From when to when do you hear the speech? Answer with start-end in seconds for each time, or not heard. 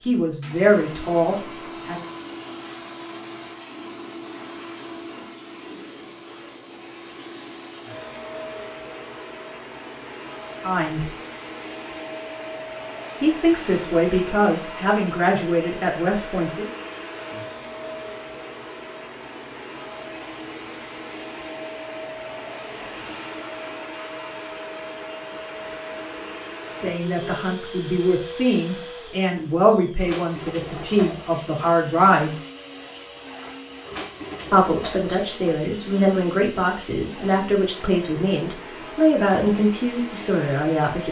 0.1-2.0, 10.6-11.1, 13.2-16.6, 26.8-32.4, 34.5-41.0.